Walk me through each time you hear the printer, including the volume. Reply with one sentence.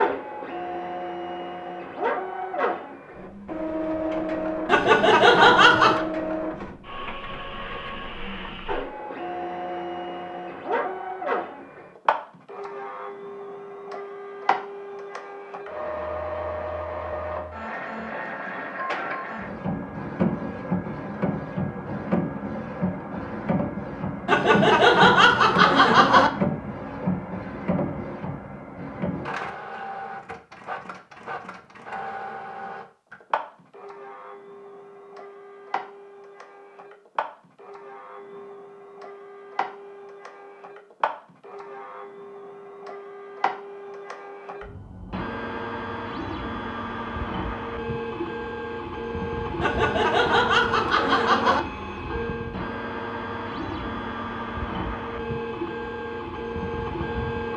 You can hear the printer from 0.0 to 57.5 s, getting quieter then louder.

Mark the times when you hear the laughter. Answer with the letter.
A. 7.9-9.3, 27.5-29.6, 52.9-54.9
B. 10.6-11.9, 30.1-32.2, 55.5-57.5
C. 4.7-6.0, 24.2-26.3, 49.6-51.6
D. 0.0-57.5
C.